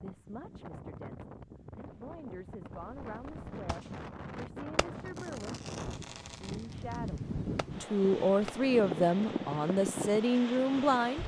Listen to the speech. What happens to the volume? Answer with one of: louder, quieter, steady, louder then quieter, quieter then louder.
louder.